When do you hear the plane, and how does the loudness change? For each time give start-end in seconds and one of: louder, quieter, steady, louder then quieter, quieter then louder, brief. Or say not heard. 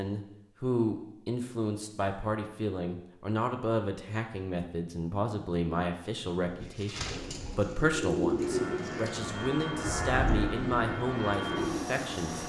8.3-12.4 steady.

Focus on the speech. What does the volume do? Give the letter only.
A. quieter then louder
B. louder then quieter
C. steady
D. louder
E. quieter
C.